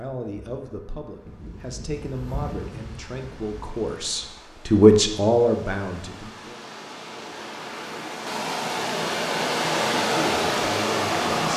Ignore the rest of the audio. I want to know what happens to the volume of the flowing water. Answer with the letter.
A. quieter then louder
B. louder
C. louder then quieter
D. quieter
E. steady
B.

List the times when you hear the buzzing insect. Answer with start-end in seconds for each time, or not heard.
0.1-4.3.